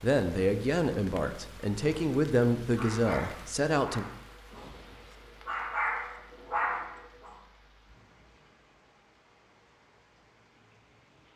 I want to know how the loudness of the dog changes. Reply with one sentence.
The volume of the dog goes down, then up.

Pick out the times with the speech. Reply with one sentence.
You can hear the speech from 0.0 to 4.0 s.